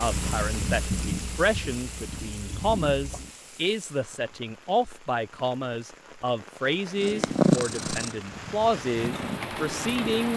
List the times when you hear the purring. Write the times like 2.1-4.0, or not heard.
0.0-3.3, 7.0-10.3.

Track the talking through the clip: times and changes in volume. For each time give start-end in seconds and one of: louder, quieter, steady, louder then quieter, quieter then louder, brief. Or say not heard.
0.0-10.3 steady.